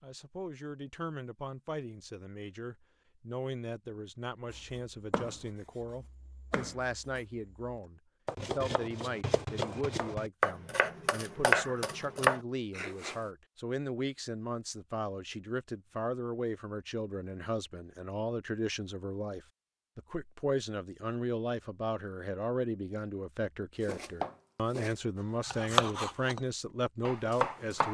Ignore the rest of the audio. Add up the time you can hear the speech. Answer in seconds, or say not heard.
28 s.